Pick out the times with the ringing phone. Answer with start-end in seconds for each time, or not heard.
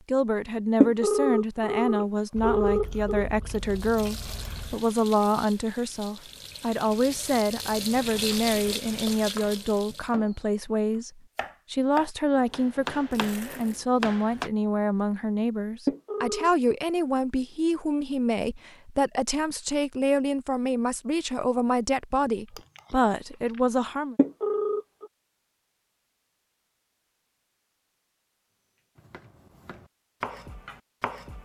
0.8-3.2, 15.8-16.5, 24.1-25.1.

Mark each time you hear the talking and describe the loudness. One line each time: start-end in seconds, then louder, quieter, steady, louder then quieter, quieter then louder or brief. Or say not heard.
0.1-24.1 steady.